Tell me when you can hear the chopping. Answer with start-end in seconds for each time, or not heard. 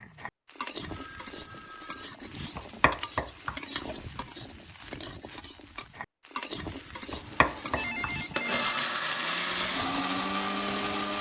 2.5-3.6, 7.1-8.2.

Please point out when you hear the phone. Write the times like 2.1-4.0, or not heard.
0.8-2.1, 7.8-8.8.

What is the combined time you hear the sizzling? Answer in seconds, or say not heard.
11 s.